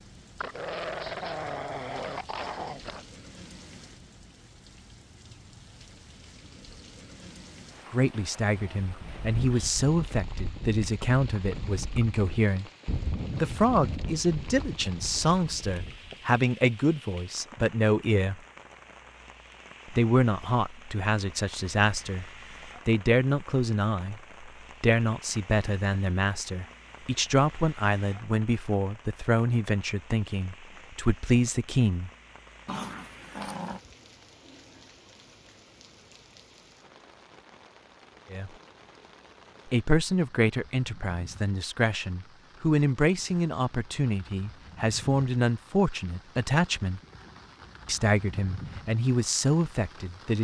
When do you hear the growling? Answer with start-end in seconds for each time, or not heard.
0.3-3.0, 32.6-33.8.